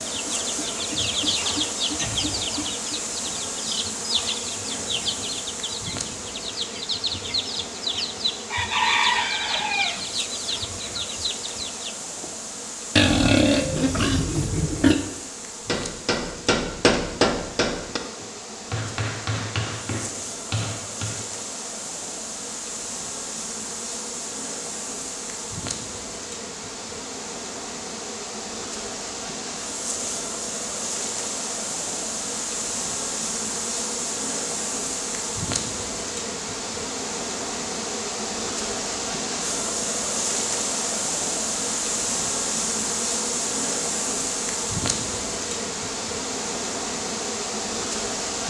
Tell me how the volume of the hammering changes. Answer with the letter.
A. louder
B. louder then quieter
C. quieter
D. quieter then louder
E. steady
C.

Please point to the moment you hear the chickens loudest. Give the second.
9 s.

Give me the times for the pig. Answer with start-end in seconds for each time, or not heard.
12.9-14.9.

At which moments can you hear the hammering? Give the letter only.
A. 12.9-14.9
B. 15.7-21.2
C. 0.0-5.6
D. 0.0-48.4
B.